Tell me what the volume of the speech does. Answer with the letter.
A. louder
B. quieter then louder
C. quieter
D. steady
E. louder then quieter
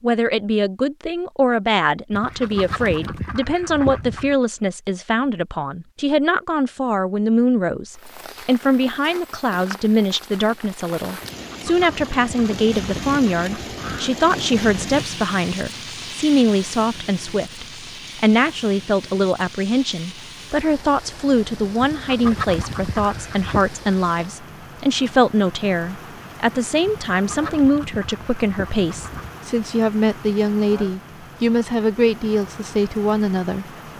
D.